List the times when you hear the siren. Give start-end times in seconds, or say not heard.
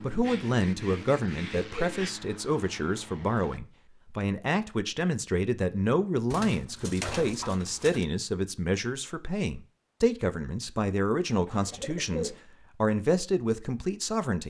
not heard.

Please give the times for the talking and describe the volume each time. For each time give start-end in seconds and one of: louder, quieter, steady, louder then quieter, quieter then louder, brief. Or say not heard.
0.0-14.4 steady.